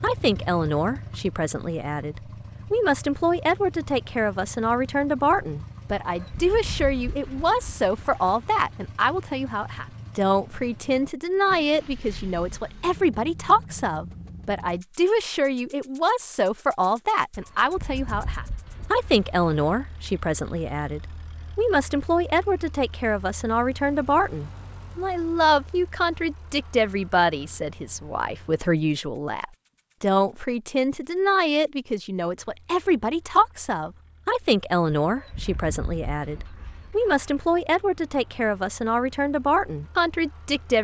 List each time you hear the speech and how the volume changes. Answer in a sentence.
You can hear the speech from 0.0 to 40.7 s, at a steady volume.